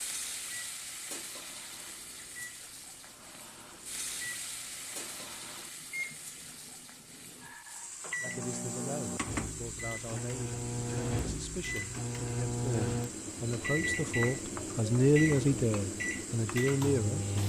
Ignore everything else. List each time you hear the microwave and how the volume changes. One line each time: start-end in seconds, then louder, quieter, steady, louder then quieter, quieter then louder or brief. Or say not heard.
0.0-17.4 louder.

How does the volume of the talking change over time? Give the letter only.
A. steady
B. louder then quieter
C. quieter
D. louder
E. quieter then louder
D.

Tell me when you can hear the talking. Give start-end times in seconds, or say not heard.
8.2-17.4.